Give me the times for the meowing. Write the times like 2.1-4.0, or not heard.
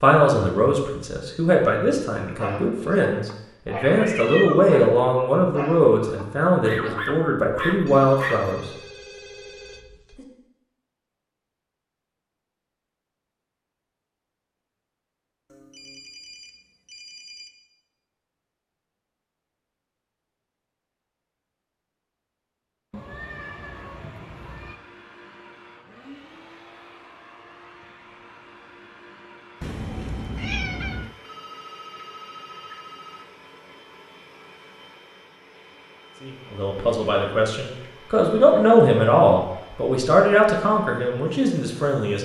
3.2-4.8, 22.9-24.8, 29.6-31.1.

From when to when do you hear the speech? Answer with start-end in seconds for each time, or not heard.
0.0-8.7, 36.2-42.1.